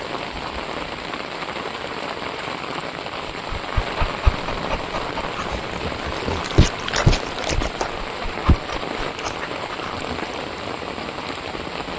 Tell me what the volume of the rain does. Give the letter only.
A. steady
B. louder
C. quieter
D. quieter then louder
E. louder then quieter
A.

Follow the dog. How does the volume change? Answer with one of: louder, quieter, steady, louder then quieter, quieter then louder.
louder then quieter.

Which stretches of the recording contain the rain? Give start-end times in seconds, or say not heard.
0.0-11.9.